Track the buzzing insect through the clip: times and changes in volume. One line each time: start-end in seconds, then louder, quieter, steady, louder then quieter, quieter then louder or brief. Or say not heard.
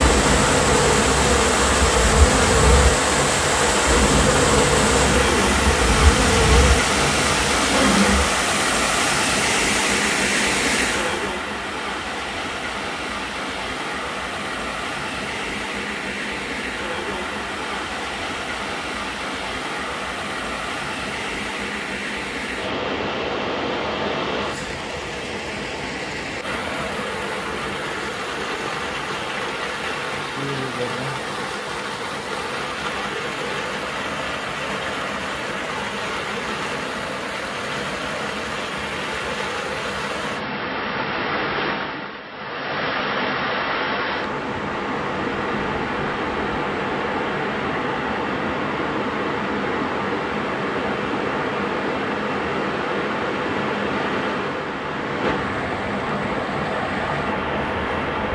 0.0-8.3 steady.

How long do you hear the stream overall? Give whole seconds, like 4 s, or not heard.
58 s.